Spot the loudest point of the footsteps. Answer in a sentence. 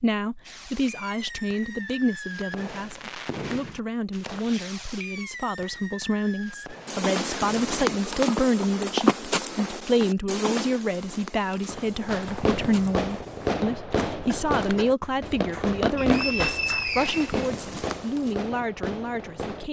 The loudest moment of the footsteps is at 9 seconds.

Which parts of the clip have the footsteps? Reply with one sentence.
You can hear the footsteps from 6.8 to 18.4 s.